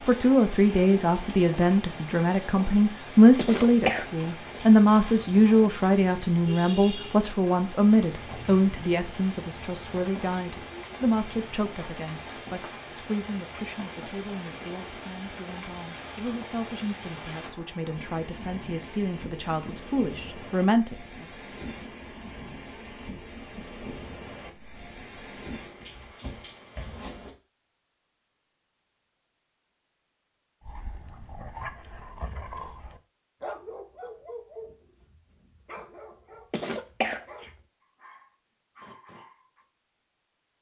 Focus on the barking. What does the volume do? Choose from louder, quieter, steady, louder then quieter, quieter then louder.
quieter.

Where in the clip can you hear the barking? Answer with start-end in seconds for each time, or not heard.
30.6-39.6.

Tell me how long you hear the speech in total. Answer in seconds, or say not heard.
21 s.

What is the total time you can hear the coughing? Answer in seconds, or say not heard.
2 s.